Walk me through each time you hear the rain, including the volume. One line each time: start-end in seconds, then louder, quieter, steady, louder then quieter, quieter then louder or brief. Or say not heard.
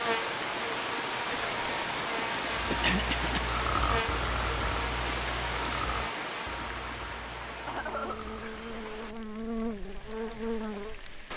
0.0-11.3 quieter.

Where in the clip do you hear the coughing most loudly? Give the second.
3 s.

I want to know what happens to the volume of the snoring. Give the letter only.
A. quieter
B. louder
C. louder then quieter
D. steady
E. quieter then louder
A.